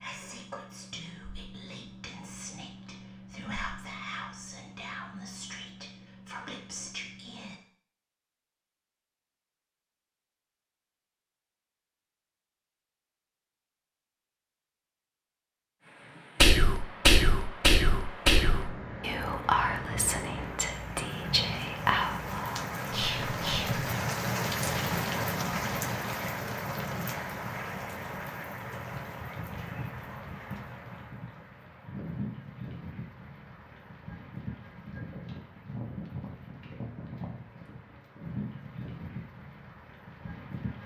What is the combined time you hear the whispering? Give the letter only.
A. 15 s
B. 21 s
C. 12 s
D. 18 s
A.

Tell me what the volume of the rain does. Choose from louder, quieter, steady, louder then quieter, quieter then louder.
louder then quieter.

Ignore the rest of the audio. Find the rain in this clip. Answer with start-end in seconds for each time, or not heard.
15.8-40.8.